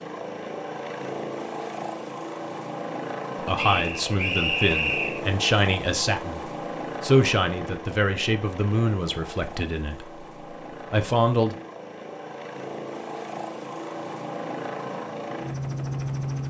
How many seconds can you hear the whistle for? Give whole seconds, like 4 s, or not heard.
2 s.